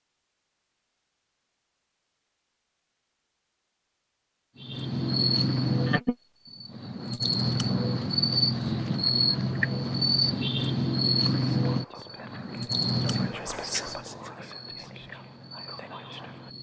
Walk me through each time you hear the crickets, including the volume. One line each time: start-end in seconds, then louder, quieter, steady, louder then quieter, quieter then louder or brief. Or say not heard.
4.6-16.5 quieter.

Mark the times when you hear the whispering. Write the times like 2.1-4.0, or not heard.
11.2-16.5.